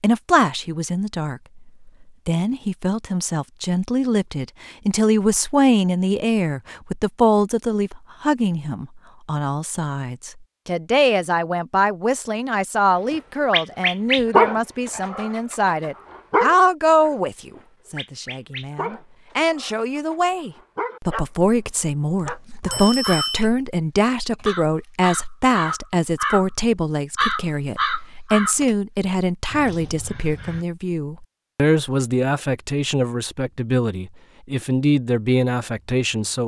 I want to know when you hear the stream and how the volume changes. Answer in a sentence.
The stream can't be heard in this clip.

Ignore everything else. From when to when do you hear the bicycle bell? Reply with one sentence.
You can hear the bicycle bell from 22.2 to 23.4 s.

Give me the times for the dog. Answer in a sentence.
The dog can be heard from 13.1 to 21.2 s and from 22.2 to 22.9 s.